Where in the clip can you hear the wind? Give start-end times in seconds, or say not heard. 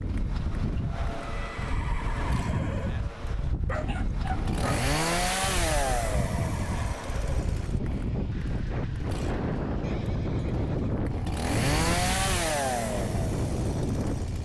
0.0-14.3.